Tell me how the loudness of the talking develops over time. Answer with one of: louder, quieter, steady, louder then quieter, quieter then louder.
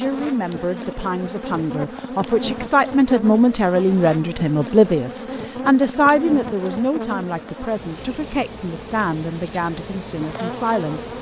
louder then quieter.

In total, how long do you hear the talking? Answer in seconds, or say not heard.
11 s.